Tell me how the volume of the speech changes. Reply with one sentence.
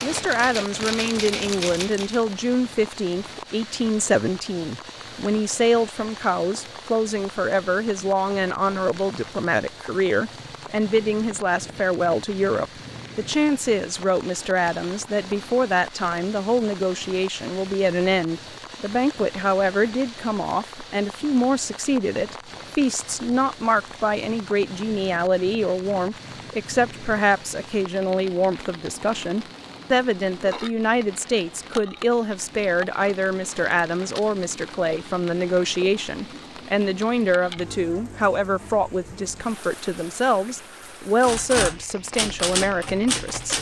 The volume of the speech stays about the same.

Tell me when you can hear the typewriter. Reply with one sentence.
The typewriter can be heard from 0.0 to 2.2 s and from 41.2 to 43.5 s.